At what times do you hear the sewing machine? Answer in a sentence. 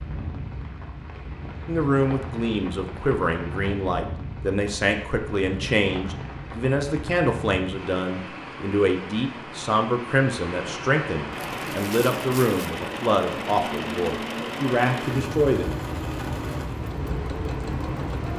You can hear the sewing machine from 11.3 to 18.3 s.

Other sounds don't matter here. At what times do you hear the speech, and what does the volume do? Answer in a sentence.
You can hear the speech from 1.6 to 15.7 s, at a steady volume.